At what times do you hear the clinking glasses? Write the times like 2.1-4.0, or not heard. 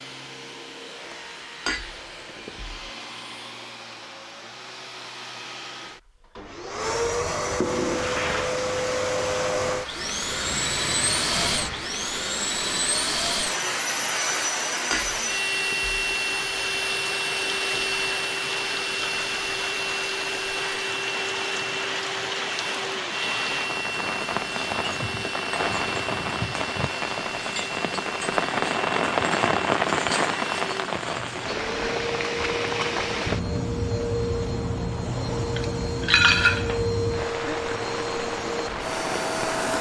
1.6-2.9, 14.9-15.9, 35.5-36.9.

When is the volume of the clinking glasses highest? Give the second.
36 s.